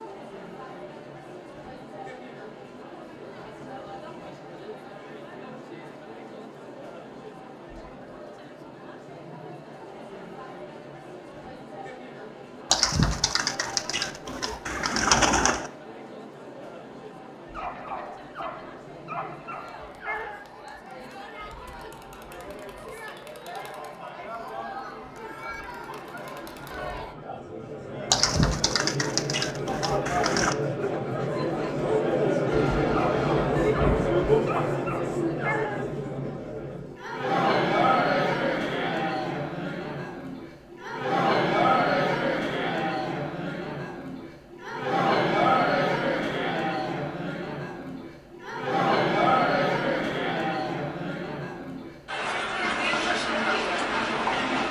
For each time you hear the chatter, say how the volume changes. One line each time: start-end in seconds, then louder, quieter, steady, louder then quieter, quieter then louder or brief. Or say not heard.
0.0-54.6 louder.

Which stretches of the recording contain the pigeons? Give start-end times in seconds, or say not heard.
12.7-15.7, 28.1-30.6.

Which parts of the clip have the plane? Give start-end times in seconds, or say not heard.
32.5-34.2, 52.6-54.6.